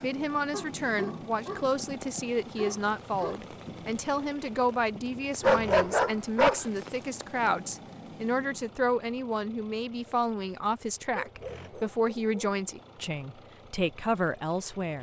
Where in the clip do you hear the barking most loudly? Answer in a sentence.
The volume of the barking peaks at 6 seconds.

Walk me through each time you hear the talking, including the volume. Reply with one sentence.
The talking can be heard from 0.0 to 14.9 s, at a steady volume.